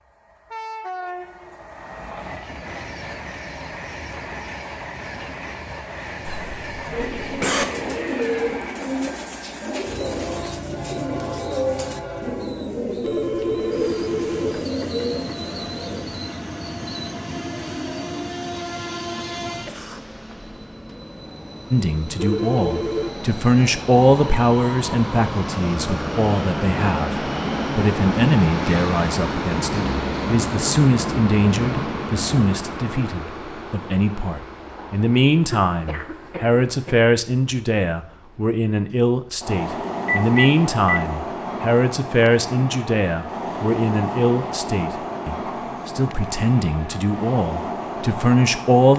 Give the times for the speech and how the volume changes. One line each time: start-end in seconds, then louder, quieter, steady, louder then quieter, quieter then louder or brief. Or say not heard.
21.7-48.9 steady.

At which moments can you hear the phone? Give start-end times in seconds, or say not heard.
13.0-14.7, 22.1-23.1, 40.0-41.0.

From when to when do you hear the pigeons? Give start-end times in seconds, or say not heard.
6.9-16.1.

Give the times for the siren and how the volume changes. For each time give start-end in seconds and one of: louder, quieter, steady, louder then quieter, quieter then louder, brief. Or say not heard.
not heard.